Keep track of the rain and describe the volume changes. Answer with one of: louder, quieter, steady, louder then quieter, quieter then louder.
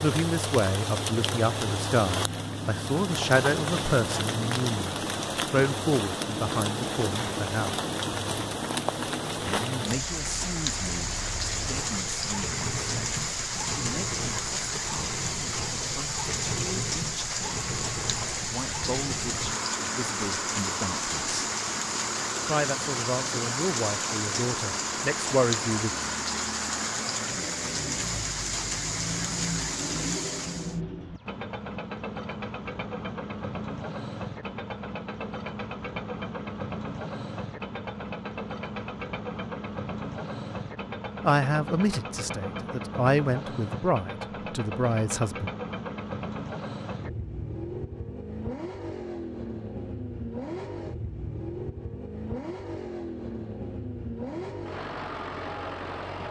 steady.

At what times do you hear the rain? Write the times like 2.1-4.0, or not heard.
0.0-30.8.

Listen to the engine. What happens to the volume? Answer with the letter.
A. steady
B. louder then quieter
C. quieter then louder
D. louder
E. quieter
A.